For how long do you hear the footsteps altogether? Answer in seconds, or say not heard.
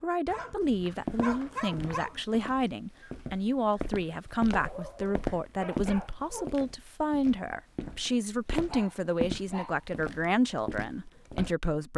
11 s.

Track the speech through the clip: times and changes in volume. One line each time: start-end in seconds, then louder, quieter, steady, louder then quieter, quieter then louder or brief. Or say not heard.
0.0-11.9 steady.